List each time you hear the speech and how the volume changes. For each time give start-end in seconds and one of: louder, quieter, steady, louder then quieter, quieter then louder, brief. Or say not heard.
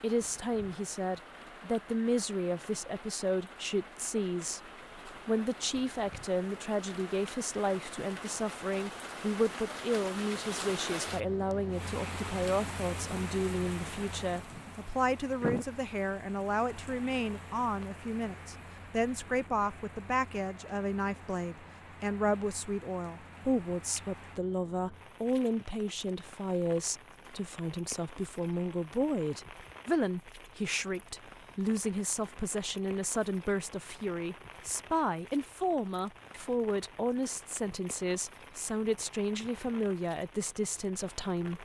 0.0-41.5 steady.